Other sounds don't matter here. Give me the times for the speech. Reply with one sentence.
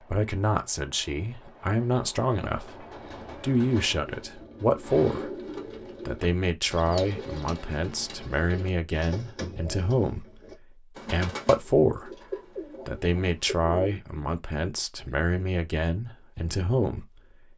You can hear the speech from 0.1 to 5.3 s, from 6.0 to 12.2 s and from 12.8 to 17.5 s.